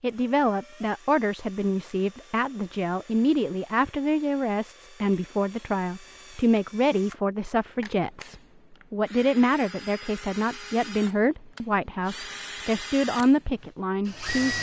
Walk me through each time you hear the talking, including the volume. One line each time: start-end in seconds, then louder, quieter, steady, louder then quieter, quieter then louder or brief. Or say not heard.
0.0-14.5 steady.